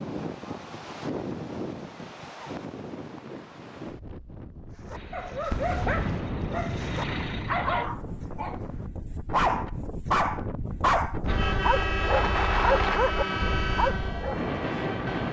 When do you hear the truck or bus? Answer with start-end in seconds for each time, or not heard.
4.9-7.7, 11.2-15.2.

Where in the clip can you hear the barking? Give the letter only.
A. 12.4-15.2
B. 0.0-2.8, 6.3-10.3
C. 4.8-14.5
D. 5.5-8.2
C.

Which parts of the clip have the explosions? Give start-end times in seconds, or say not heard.
5.5-8.2.